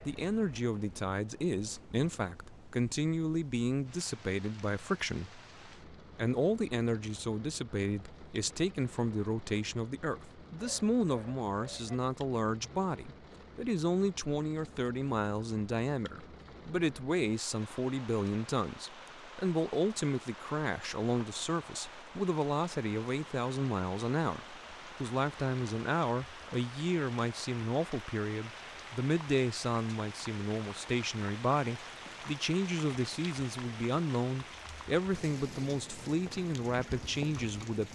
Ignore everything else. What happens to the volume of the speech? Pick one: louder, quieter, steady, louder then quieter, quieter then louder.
steady.